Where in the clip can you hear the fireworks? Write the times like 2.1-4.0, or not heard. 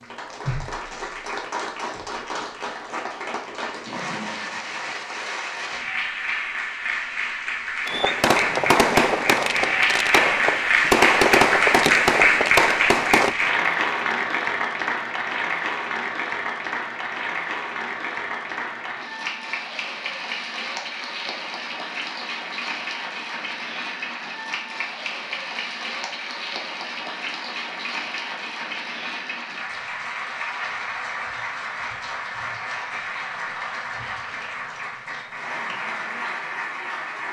7.8-13.3.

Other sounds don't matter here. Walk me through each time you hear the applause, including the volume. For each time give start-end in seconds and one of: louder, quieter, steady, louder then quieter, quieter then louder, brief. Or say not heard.
0.0-37.2 louder then quieter.